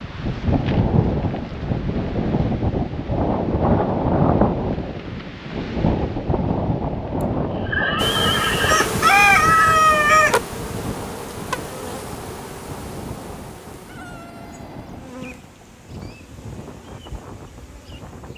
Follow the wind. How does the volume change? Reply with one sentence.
The loudness of the wind goes down.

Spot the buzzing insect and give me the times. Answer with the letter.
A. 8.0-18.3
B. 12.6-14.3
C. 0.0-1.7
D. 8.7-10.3
A.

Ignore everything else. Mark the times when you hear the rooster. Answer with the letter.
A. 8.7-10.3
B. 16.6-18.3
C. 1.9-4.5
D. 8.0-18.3
A.